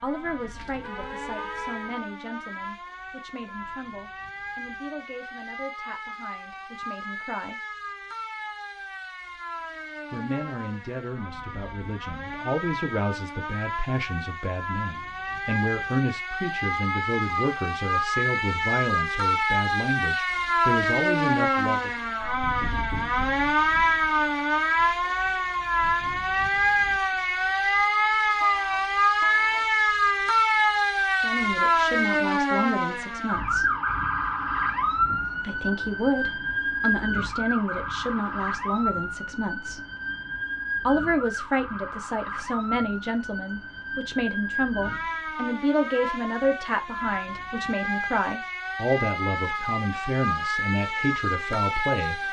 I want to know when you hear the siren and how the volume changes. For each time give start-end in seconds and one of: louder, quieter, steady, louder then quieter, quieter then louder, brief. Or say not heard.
0.0-52.2 louder then quieter.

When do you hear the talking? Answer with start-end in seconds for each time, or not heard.
0.0-7.6, 10.1-21.9, 31.2-33.7, 35.4-39.8, 40.9-52.2.